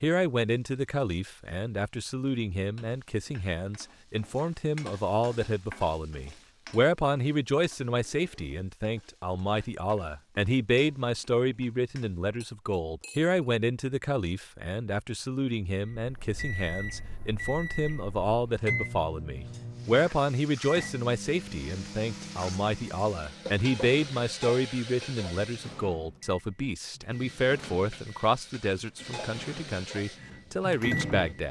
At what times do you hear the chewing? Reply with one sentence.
The chewing can't be heard in this clip.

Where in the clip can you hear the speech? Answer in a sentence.
The speech can be heard from 0.0 to 31.4 s.